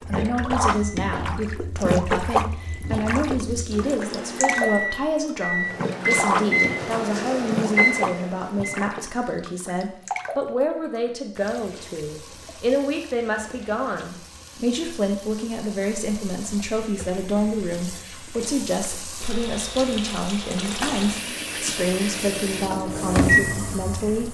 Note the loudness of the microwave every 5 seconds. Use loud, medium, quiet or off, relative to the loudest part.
medium, loud, off, off, loud.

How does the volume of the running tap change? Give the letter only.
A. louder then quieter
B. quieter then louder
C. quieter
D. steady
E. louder
B.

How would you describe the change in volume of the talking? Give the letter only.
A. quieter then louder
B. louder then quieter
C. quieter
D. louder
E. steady
E.